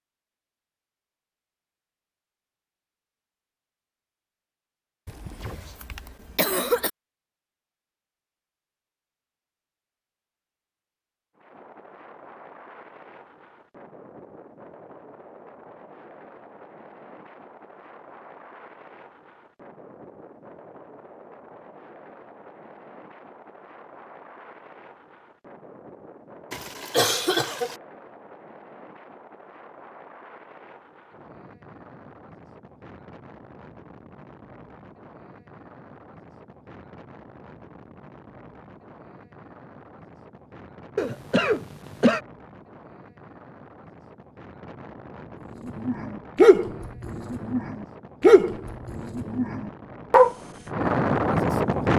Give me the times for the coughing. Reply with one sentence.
You can hear the coughing from 5.0 to 6.9 s, from 26.5 to 27.8 s and from 41.0 to 42.2 s.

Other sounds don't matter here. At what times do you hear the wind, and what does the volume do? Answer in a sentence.
You can hear the wind from 11.3 to 51.9 s, getting louder.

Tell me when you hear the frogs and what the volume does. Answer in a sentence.
You can't hear the frogs here.